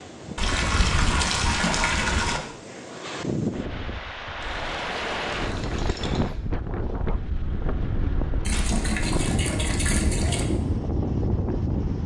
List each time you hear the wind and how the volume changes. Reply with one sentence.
You can hear the wind from 0.0 to 12.0 s, getting louder.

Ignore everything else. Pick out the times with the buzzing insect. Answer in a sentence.
You can't hear the buzzing insect here.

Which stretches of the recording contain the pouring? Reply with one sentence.
You can hear the pouring from 0.3 to 2.4 s, from 4.4 to 6.4 s and from 8.4 to 10.4 s.